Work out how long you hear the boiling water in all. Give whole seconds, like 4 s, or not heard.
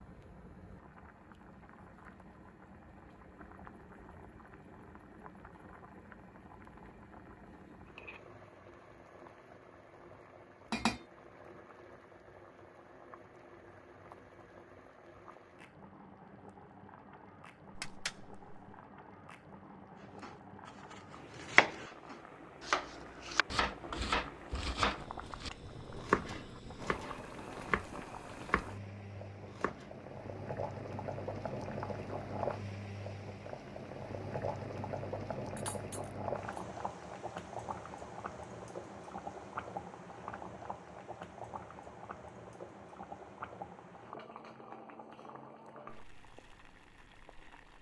48 s.